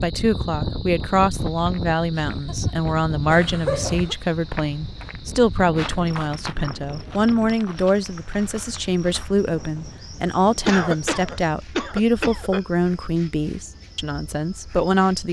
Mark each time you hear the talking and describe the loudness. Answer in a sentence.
The talking can be heard from 0.0 to 15.2 s, at a steady volume.